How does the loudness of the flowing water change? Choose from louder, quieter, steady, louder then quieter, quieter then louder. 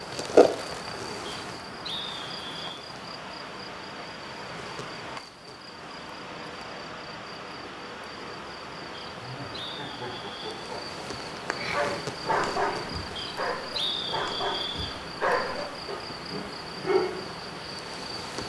steady.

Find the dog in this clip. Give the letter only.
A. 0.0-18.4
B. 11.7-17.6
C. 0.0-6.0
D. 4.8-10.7
B.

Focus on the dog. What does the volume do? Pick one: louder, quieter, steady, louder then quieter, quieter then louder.
quieter then louder.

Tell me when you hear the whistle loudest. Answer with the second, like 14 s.
14 s.